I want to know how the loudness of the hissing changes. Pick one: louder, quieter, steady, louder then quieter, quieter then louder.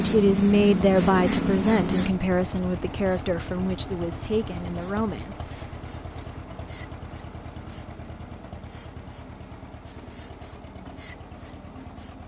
quieter.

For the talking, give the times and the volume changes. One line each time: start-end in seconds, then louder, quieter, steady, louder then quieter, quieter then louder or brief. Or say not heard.
0.0-5.6 quieter.